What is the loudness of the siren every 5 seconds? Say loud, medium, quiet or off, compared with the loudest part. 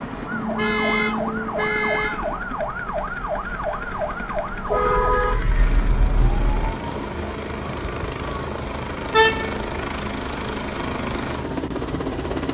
loud, medium, medium.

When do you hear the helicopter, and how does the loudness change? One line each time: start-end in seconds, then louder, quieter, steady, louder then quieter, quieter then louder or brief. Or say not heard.
0.0-12.4 louder.